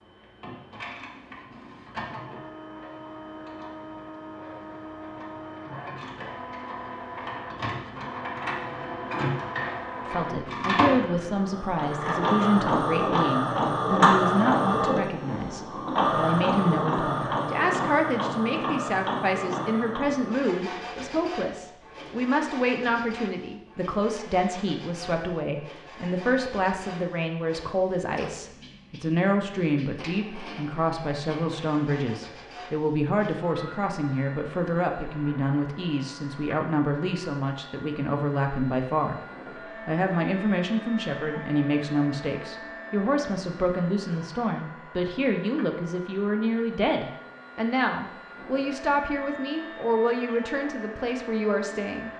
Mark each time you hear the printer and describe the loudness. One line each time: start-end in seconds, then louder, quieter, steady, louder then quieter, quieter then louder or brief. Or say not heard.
0.0-52.1 louder then quieter.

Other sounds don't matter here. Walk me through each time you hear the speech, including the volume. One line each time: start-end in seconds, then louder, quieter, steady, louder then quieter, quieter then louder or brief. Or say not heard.
10.1-39.2 steady
39.9-52.1 steady.